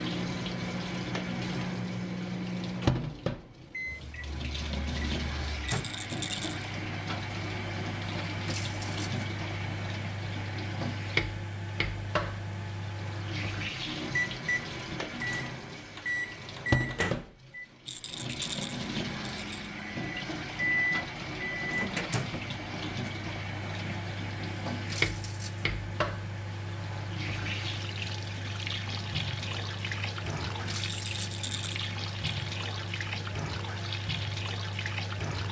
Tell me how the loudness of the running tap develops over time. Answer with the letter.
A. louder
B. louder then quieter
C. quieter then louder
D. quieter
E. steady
E.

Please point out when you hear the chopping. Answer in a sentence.
The chopping can't be heard in this clip.